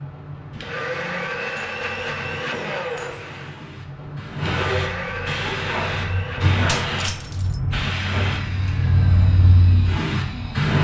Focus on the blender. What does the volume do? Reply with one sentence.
The volume of the blender goes down.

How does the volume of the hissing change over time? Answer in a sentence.
The loudness of the hissing goes up.